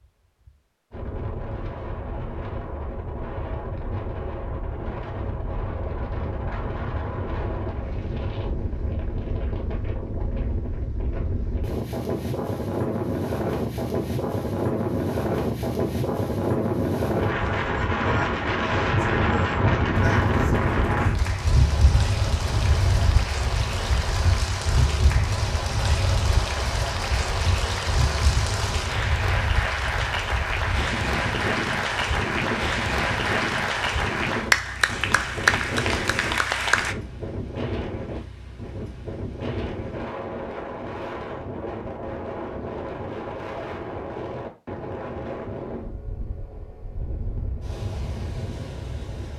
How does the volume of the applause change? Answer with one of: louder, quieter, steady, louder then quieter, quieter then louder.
louder.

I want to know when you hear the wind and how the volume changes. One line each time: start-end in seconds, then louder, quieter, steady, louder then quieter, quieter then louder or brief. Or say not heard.
0.5-49.3 louder then quieter.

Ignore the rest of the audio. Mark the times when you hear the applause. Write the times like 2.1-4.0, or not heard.
20.1-37.0.